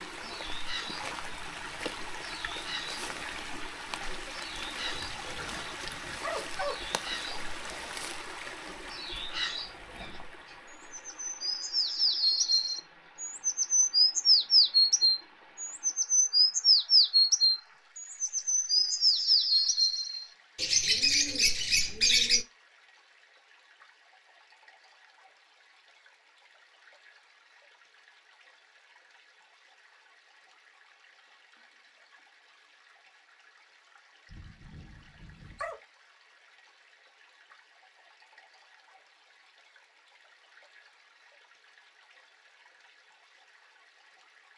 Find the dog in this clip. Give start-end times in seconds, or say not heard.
4.9-6.8, 34.3-35.8.